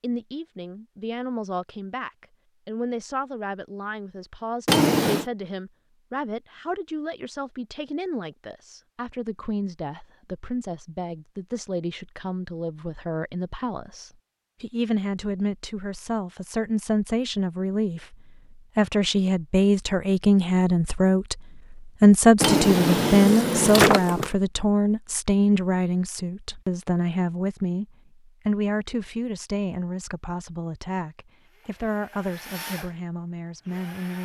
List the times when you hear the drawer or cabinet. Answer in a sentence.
You can hear the drawer or cabinet from 4.7 to 5.2 s and from 22.4 to 24.3 s.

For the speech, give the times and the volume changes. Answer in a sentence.
The speech can be heard from 0.0 to 34.2 s, getting louder then quieter.